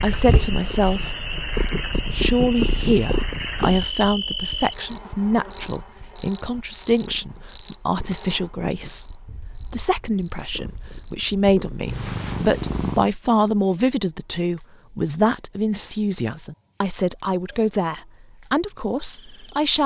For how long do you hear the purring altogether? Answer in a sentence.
The purring can be heard for 13 seconds in total.